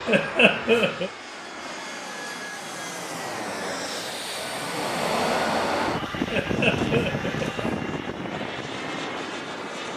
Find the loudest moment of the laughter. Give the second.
1 s.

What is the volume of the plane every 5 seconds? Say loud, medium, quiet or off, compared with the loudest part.
medium, loud.